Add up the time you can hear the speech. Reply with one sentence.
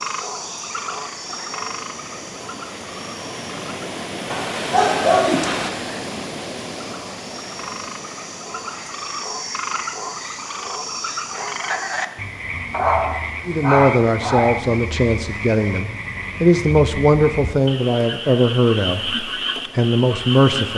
You can hear the speech for 7 seconds altogether.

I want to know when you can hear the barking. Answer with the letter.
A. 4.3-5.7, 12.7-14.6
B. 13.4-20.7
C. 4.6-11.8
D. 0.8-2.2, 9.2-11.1
A.